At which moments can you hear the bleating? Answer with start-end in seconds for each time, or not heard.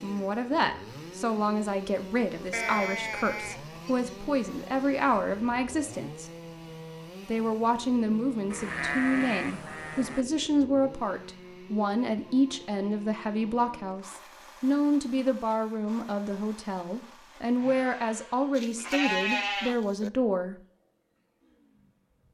2.5-4.1, 8.5-10.2, 18.6-20.1.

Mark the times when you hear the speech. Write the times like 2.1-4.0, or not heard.
0.0-6.3, 7.2-20.6.